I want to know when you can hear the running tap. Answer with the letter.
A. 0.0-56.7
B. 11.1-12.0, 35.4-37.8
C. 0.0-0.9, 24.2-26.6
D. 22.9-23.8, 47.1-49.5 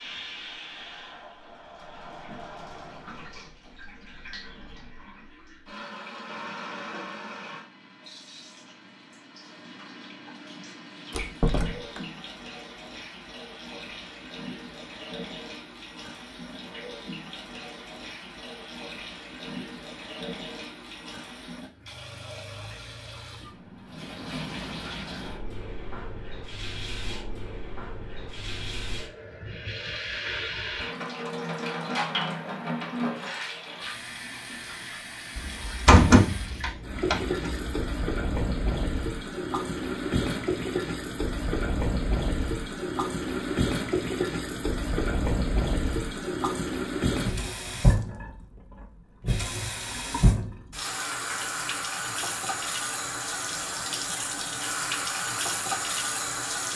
A.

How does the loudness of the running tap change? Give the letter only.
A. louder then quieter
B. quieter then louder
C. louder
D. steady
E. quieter
C.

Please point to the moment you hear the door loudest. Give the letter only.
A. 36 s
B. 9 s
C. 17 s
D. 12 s
A.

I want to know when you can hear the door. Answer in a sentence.
The door can be heard from 11.1 to 12.0 s and from 35.4 to 37.8 s.